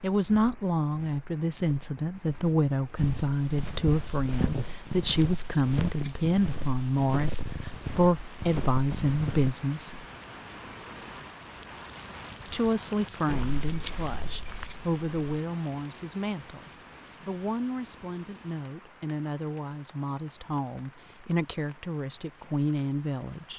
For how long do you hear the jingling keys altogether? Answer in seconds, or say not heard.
3 s.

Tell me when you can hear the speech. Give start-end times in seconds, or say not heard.
0.0-10.1, 12.5-23.5.